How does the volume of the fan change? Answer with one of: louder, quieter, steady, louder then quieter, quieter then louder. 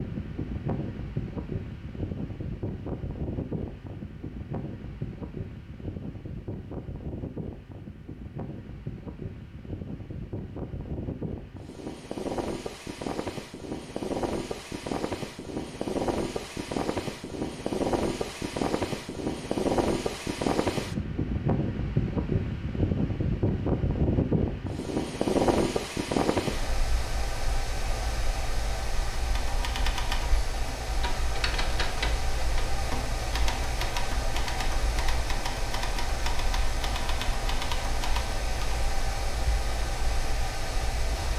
louder then quieter.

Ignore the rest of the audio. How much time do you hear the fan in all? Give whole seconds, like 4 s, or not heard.
41 s.